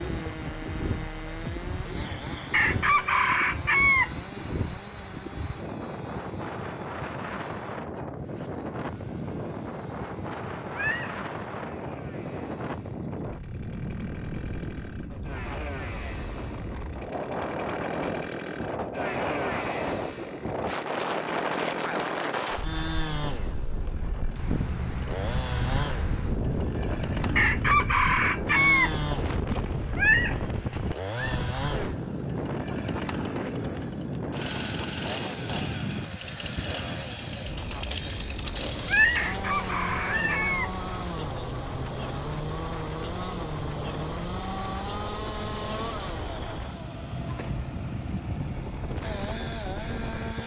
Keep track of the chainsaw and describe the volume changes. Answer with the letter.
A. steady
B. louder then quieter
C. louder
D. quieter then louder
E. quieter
C.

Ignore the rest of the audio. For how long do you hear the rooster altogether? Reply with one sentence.
You can hear the rooster for 5 seconds altogether.